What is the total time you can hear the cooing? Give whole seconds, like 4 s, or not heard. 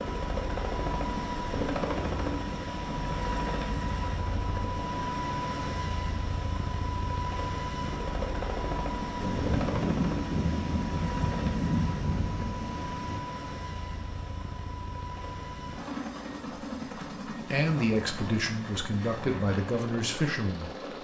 not heard.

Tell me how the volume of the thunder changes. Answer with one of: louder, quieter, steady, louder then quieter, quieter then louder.
quieter.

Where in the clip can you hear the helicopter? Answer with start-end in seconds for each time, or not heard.
0.0-21.0.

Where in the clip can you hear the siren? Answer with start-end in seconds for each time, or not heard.
not heard.